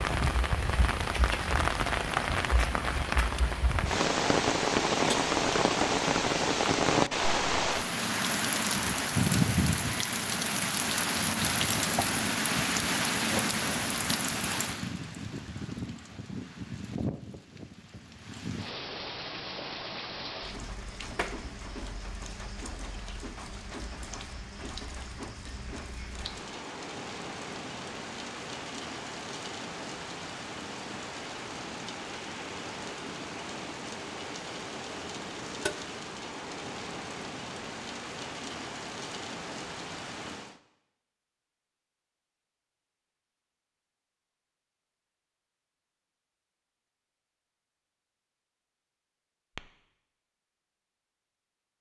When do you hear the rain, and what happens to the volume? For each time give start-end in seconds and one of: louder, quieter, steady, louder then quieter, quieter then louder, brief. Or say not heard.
0.0-40.6 quieter.